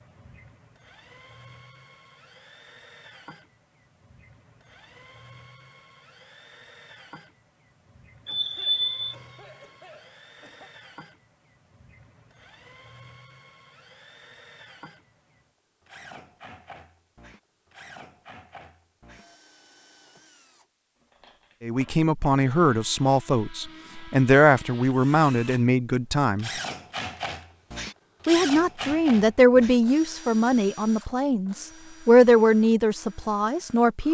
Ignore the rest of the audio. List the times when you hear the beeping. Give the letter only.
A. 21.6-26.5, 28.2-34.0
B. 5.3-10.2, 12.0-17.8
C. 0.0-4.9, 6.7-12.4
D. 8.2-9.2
D.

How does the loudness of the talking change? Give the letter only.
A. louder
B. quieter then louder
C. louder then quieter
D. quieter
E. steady
E.